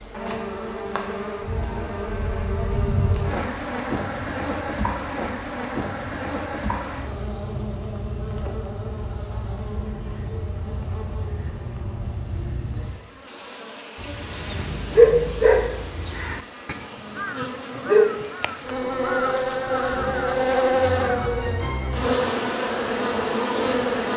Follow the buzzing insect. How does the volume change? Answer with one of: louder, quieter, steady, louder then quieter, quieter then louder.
quieter then louder.